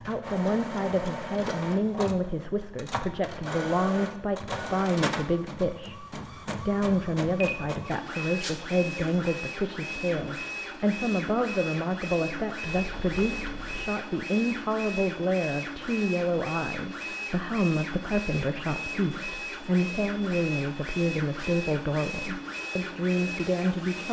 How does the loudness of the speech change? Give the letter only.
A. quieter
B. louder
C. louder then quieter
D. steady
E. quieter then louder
D.